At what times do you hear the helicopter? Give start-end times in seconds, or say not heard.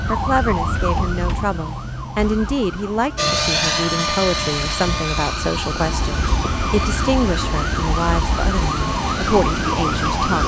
3.1-10.4.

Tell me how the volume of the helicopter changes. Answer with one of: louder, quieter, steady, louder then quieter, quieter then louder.
quieter.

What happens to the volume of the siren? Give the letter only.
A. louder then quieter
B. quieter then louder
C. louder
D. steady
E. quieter
B.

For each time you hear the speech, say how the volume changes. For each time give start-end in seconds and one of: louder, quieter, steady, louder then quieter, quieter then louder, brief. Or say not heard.
0.1-10.4 steady.